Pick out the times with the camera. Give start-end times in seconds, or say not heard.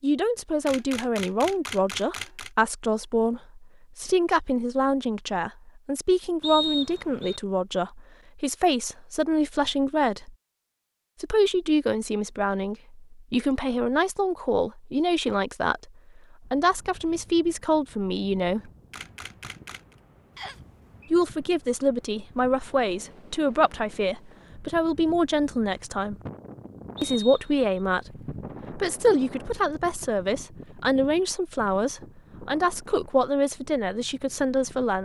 0.7-2.5, 18.9-19.9.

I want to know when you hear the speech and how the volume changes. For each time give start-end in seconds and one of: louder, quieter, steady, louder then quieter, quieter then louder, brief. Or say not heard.
0.0-10.3 steady
11.2-18.7 steady
21.1-26.1 steady
27.0-35.0 steady.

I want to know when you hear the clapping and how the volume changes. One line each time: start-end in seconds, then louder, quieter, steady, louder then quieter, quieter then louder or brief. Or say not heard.
not heard.